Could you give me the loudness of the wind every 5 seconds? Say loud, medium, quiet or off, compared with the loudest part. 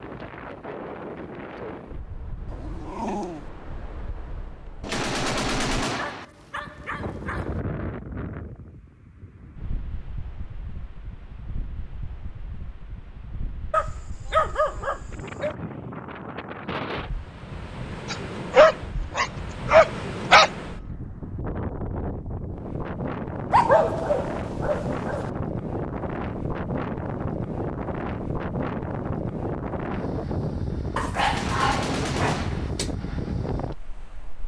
medium, medium, quiet, medium, loud, loud, loud.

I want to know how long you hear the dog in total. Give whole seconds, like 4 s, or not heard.
11 s.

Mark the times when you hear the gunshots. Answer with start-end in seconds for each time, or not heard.
4.8-6.2, 31.2-32.7.